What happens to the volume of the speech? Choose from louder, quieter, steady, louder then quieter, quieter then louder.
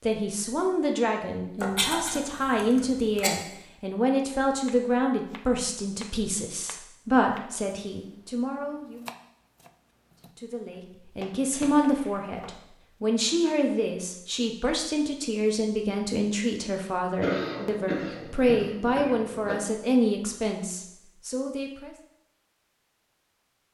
steady.